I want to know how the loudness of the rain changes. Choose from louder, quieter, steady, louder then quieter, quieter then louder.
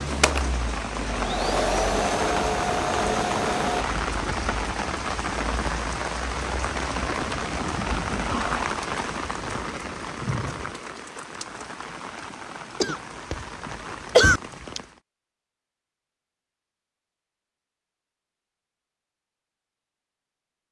quieter.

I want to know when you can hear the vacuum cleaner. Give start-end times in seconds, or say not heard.
0.0-3.9.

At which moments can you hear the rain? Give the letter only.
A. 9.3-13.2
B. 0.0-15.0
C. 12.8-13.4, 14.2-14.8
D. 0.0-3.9
B.